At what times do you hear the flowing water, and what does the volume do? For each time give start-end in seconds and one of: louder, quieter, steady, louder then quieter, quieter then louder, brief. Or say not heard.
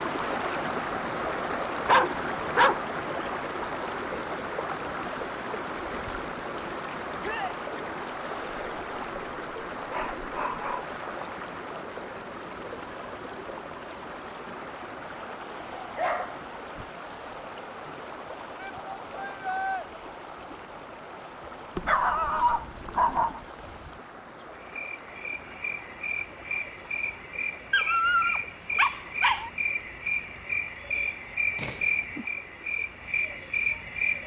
0.0-34.2 quieter.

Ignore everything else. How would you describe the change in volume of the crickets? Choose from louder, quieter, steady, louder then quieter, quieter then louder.
louder.